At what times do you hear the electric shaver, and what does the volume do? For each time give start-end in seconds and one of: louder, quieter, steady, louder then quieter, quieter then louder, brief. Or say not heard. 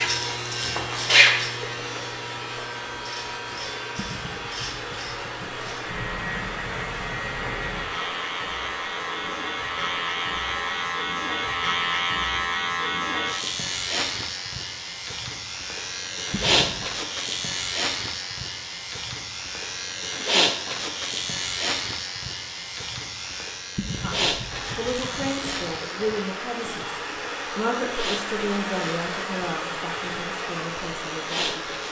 0.0-31.8 quieter.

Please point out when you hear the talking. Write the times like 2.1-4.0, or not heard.
24.0-31.8.